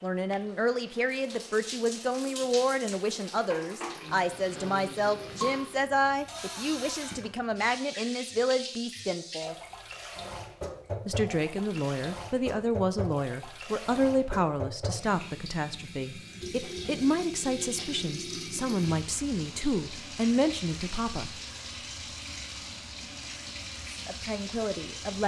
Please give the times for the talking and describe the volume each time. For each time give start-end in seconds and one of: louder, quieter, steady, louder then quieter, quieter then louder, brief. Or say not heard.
0.0-9.6 steady
11.1-21.4 steady
23.9-25.2 brief.